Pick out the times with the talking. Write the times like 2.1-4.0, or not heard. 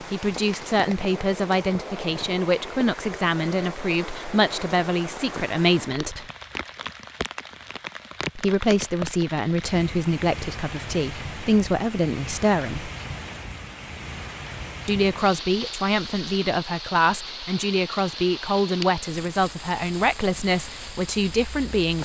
0.0-6.2, 8.3-12.9, 14.8-22.0.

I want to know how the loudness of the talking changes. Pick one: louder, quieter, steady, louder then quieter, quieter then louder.
steady.